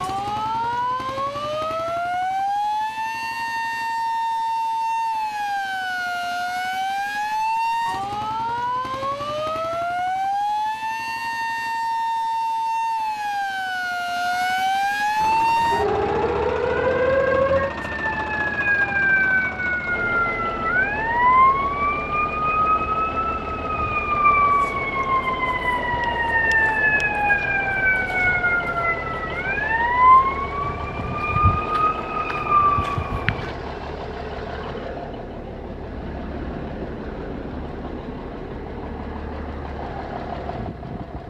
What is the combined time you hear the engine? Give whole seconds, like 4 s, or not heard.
26 s.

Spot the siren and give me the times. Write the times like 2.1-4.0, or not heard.
0.0-33.5.